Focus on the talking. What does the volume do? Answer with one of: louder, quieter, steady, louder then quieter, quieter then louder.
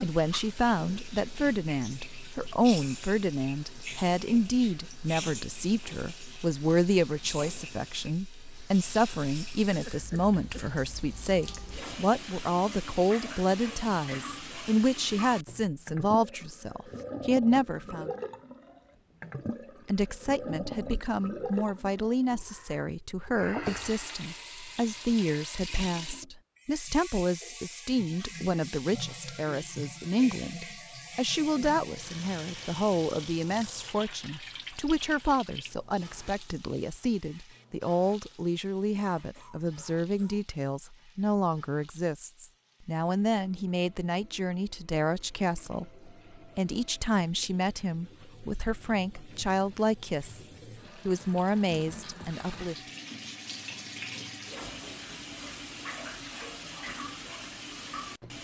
steady.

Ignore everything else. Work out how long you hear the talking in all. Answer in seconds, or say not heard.
51 s.